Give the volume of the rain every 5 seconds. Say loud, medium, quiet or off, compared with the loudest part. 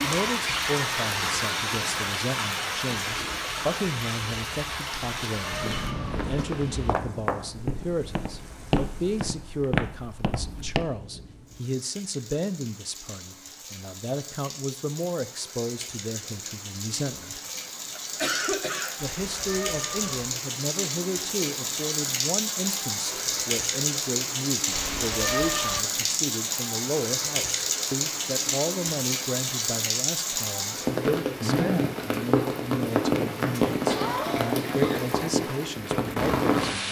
loud, quiet, quiet, medium, loud, loud, loud, loud.